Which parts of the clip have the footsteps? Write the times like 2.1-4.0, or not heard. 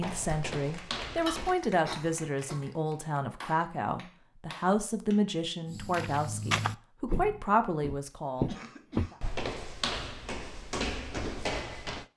0.0-1.6, 5.7-12.1.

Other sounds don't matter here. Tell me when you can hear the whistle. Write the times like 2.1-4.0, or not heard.
not heard.